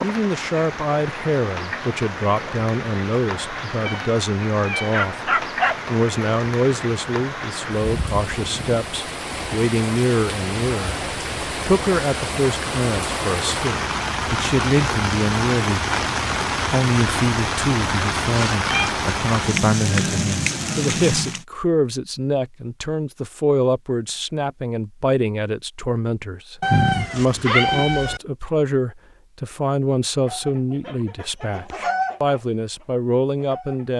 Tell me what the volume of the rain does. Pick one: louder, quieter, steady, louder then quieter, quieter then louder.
louder.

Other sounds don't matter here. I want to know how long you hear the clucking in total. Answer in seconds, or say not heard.
4 s.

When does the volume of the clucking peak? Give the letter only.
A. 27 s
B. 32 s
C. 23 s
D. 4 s
B.